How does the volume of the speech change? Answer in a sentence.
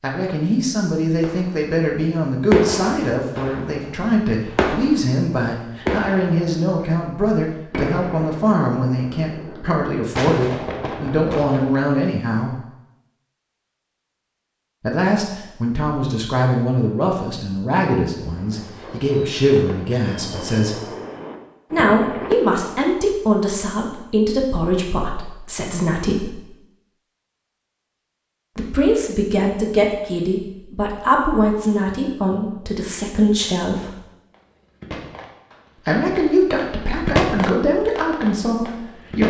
The volume of the speech stays about the same.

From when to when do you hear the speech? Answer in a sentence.
You can hear the speech from 0.0 to 12.6 s, from 14.8 to 20.8 s, from 21.7 to 26.4 s, from 28.6 to 33.9 s and from 35.9 to 39.2 s.